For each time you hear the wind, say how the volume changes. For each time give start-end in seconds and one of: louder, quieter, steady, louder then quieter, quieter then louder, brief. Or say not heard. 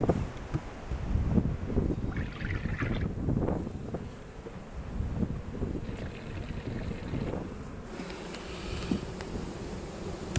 0.0-10.3 quieter.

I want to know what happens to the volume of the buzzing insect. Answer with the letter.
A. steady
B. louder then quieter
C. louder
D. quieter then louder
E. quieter
C.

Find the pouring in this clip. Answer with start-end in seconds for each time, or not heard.
2.1-3.1, 5.8-7.3.